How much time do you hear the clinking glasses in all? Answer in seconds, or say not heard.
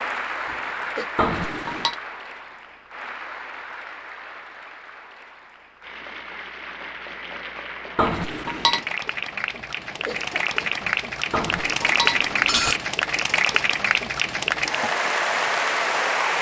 3 s.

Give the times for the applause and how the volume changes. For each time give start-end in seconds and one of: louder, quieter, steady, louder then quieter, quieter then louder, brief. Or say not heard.
0.0-16.3 quieter then louder.